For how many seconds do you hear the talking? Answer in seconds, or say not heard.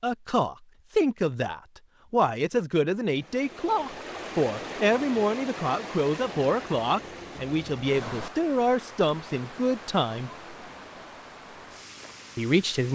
11 s.